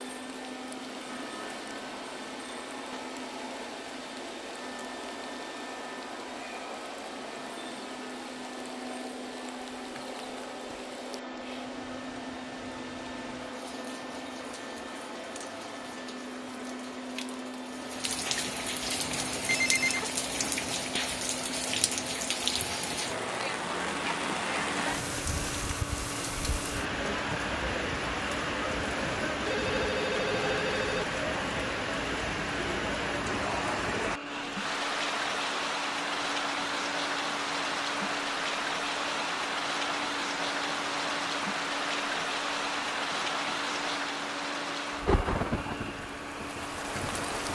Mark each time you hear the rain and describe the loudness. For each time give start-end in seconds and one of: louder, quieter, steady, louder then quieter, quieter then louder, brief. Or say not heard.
0.0-47.5 louder.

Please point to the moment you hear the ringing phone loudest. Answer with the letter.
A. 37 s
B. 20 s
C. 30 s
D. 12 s
B.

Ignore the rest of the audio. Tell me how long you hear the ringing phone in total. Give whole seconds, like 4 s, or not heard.
2 s.